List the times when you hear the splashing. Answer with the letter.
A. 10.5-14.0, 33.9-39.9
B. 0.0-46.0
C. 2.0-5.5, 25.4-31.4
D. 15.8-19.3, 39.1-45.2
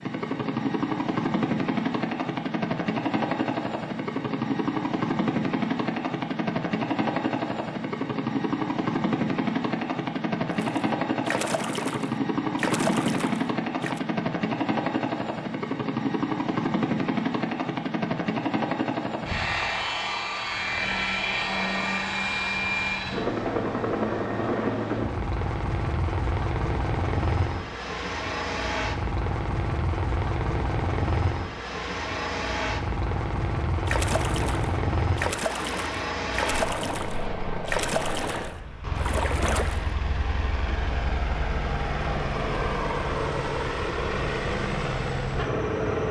A.